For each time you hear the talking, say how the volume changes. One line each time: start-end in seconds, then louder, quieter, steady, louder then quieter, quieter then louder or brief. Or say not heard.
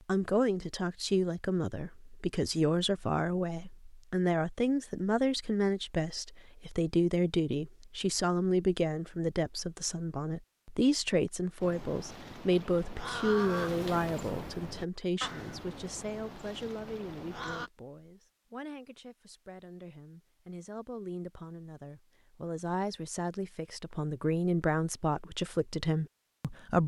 0.1-26.8 quieter then louder.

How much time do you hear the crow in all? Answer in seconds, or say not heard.
6 s.